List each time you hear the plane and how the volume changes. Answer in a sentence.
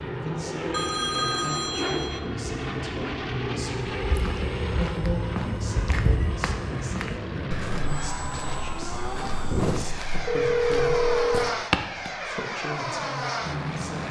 You can hear the plane from 0.0 to 14.0 s, at a steady volume.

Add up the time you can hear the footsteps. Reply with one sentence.
The footsteps can be heard for 8 seconds in total.